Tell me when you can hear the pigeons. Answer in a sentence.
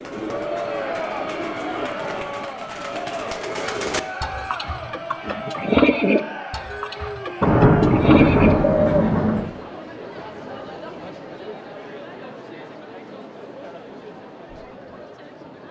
You can hear the pigeons from 0.0 to 9.1 s.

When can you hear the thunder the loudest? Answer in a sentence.
The volume of the thunder peaks at 8 seconds.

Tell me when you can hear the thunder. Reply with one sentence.
The thunder can be heard from 7.4 to 9.4 s.